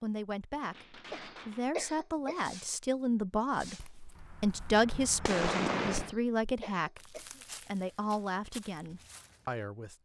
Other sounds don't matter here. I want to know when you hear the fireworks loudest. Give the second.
6 s.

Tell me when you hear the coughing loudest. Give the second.
2 s.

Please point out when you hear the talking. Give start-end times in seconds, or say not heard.
0.0-9.9.